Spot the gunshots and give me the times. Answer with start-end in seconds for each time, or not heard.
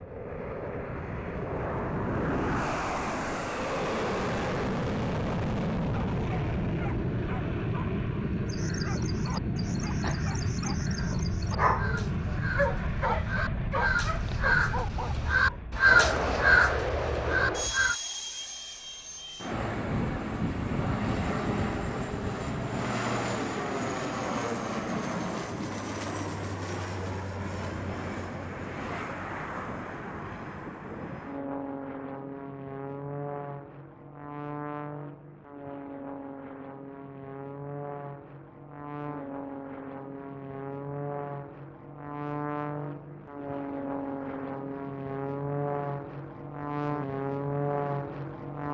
not heard.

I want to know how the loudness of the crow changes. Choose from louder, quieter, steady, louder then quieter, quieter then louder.
louder.